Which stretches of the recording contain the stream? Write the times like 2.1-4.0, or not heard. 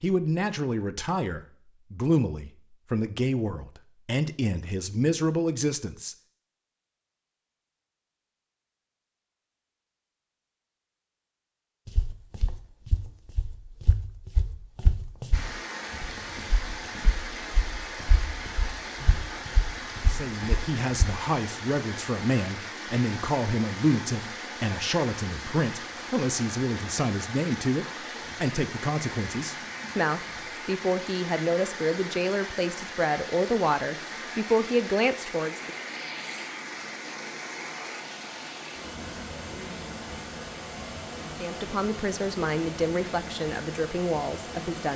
15.3-44.9.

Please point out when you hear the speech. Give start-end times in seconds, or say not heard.
0.0-6.2, 20.1-35.8, 41.4-44.9.